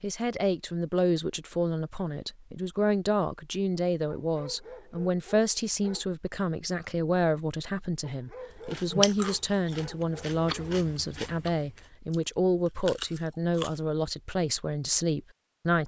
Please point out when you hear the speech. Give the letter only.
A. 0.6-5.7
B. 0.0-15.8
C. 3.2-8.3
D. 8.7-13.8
B.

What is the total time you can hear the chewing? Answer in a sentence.
The chewing can be heard for 5 seconds in total.